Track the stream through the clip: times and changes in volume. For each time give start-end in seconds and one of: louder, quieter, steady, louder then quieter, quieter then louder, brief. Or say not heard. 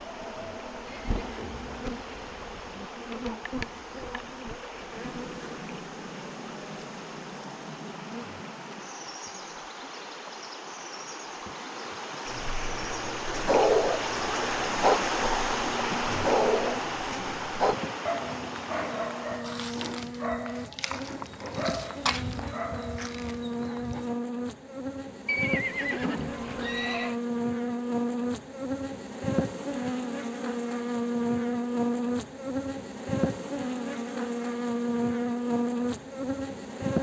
0.0-19.4 louder.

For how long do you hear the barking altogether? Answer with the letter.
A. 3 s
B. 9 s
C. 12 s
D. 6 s
C.